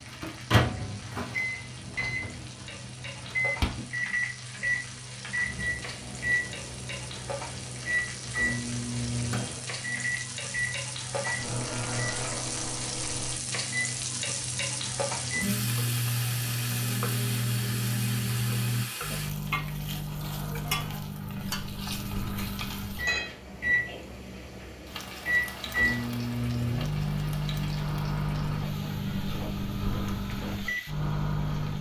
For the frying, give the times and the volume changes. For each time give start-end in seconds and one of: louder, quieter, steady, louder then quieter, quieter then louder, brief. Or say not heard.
0.0-31.7 louder then quieter.